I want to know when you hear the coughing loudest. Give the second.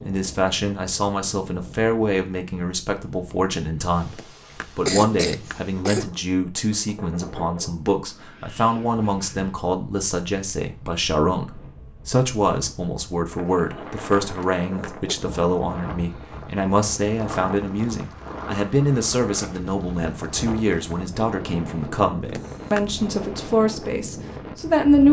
5 s.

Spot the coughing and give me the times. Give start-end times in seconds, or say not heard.
4.1-6.0, 14.3-15.2, 22.2-22.9.